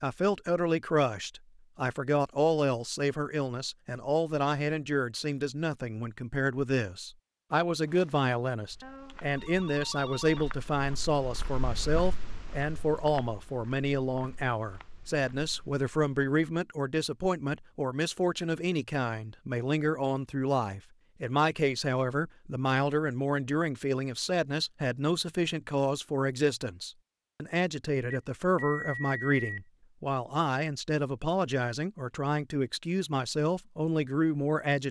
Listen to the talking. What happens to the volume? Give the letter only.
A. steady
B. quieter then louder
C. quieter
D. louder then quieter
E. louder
A.